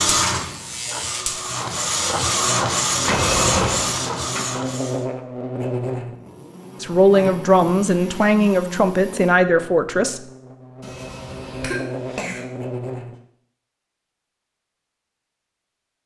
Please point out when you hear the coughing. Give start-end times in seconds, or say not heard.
3.0-3.9, 10.8-12.4.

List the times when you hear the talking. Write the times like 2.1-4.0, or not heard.
6.8-10.2.